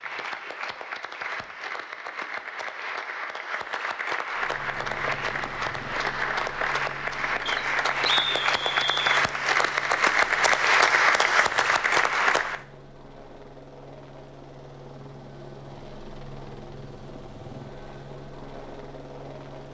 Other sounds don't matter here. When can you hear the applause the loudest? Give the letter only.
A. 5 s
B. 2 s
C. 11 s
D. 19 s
C.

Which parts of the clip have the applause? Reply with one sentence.
The applause can be heard from 0.0 to 12.6 s.